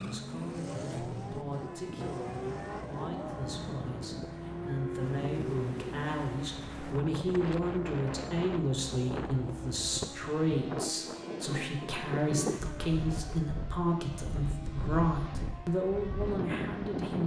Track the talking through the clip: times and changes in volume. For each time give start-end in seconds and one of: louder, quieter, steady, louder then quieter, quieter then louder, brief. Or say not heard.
0.0-17.2 louder.